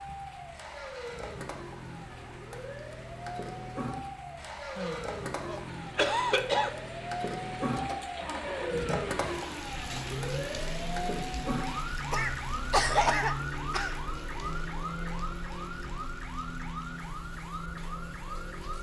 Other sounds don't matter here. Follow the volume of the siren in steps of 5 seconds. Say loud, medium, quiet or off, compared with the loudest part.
medium, loud, loud, medium.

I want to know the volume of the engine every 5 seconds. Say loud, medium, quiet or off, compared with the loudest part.
medium, loud, loud, loud.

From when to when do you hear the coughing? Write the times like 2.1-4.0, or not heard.
4.8-6.8, 12.1-13.9.